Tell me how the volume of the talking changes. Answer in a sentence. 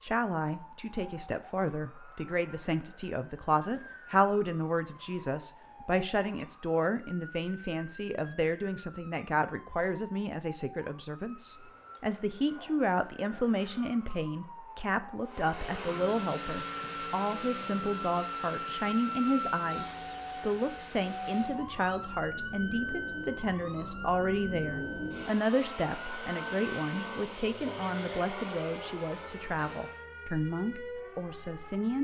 The volume of the talking stays about the same.